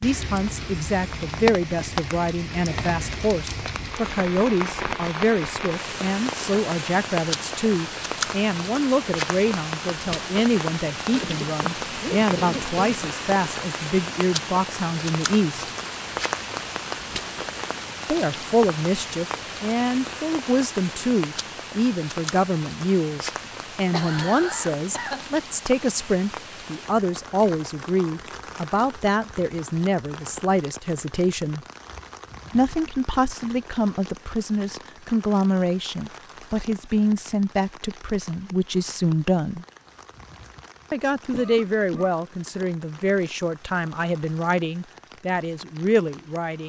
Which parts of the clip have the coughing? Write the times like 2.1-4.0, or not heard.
11.1-13.1, 23.4-25.2, 41.3-42.1.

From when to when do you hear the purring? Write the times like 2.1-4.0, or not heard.
not heard.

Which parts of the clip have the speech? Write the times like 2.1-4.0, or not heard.
0.0-15.7, 18.1-31.6, 32.5-39.6, 40.9-46.6.